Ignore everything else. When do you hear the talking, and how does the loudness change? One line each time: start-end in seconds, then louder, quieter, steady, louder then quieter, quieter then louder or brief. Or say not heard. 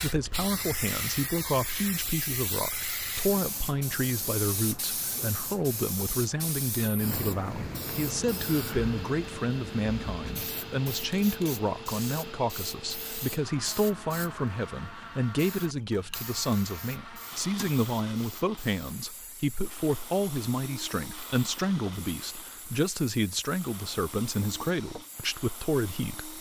0.0-26.3 steady.